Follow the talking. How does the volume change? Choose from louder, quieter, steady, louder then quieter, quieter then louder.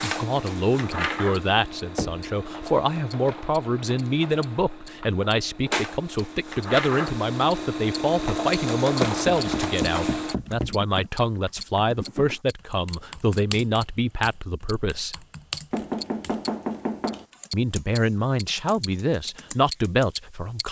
steady.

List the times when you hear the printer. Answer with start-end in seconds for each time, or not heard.
0.0-10.3.